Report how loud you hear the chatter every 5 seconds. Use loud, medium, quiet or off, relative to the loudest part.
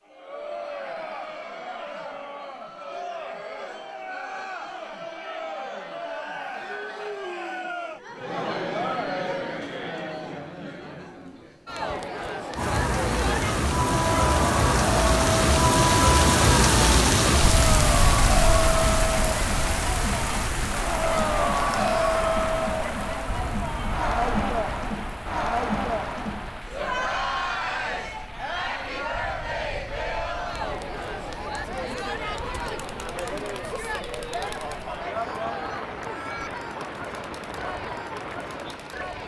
medium, medium, medium, loud, loud, loud, medium, medium.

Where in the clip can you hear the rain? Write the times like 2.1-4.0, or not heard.
12.6-39.2.